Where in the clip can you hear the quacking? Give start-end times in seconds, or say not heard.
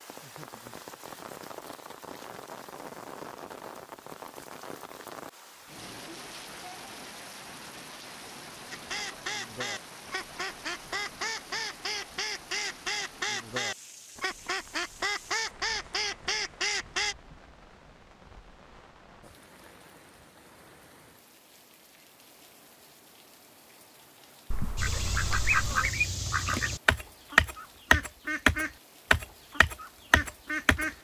8.7-17.1, 24.8-30.9.